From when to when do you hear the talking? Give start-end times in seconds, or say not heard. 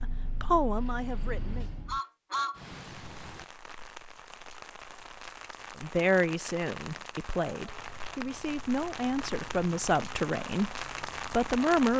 0.0-1.7, 5.8-11.9.